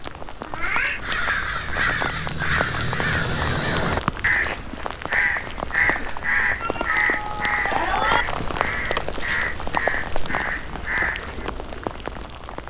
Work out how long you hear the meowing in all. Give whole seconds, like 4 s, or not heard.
2 s.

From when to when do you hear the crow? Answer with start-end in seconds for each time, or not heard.
1.0-11.5.